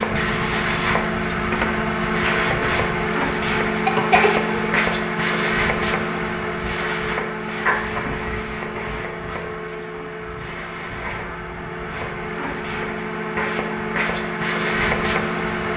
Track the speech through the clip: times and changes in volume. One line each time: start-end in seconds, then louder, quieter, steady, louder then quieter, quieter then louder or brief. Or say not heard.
not heard.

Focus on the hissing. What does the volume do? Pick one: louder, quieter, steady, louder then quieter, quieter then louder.
quieter then louder.